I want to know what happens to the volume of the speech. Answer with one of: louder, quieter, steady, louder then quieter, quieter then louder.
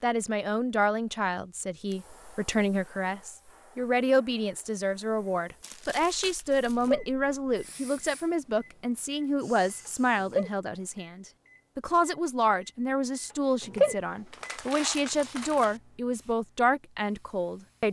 steady.